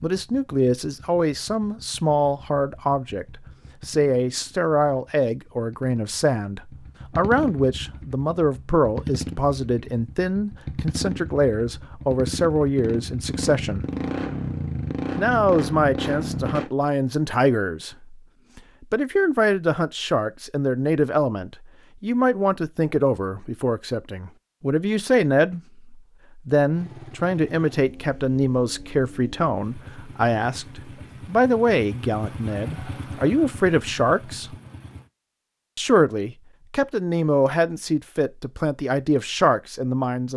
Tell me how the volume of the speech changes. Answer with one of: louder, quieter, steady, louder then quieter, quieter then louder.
steady.